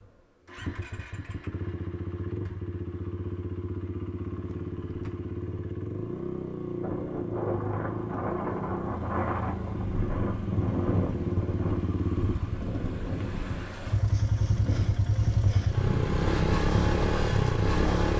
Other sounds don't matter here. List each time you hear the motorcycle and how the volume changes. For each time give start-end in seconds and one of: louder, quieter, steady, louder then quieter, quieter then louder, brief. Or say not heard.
0.0-18.1 louder.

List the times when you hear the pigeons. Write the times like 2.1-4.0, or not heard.
not heard.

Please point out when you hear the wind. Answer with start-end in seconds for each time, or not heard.
6.8-18.1.